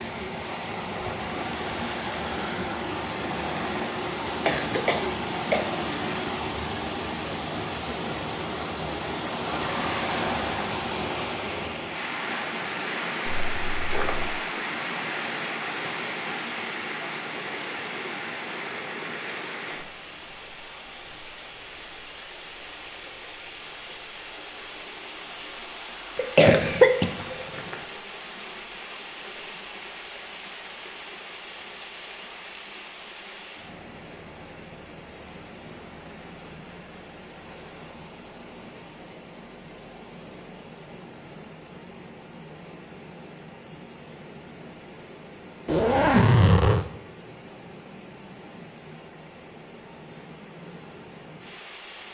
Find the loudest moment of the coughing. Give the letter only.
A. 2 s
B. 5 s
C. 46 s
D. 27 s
D.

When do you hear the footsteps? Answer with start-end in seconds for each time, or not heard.
not heard.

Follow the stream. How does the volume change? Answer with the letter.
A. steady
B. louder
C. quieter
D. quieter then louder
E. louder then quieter
C.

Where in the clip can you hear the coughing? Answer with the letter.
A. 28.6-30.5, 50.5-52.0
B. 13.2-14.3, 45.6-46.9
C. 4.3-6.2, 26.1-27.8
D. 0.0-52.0
C.